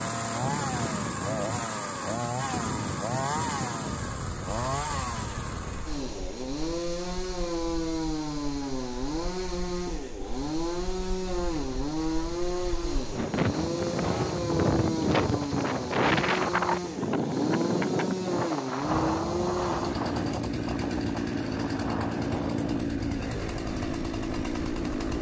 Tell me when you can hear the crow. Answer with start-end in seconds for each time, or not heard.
not heard.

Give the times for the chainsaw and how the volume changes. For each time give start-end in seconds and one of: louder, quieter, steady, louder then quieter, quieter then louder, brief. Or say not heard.
0.0-25.1 steady.